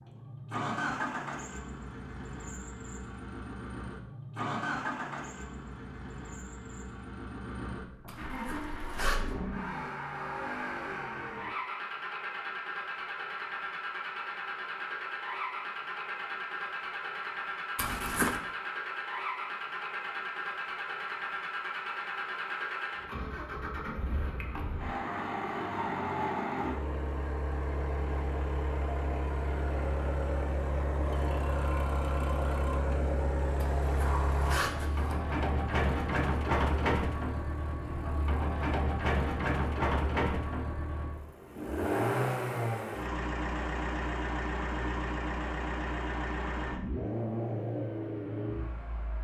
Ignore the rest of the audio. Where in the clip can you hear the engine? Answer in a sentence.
You can hear the engine from 0.0 to 49.1 s.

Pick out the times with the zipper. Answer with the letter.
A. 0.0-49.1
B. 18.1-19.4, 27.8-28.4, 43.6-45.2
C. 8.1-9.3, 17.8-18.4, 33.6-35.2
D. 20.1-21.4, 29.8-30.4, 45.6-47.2
C.